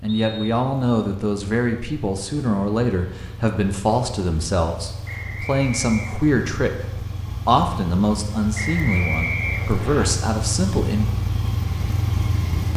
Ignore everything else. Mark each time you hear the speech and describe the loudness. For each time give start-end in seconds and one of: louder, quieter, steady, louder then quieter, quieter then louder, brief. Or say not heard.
0.0-11.1 steady.